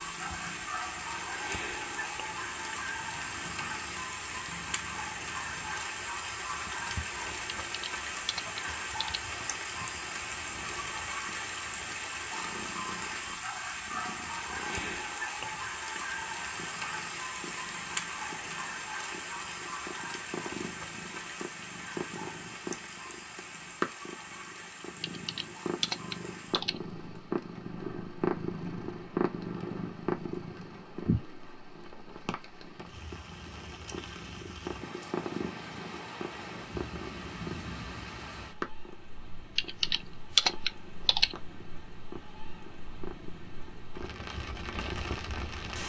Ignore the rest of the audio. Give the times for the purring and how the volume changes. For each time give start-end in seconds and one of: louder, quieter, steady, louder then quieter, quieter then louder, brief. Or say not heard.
0.0-45.8 louder then quieter.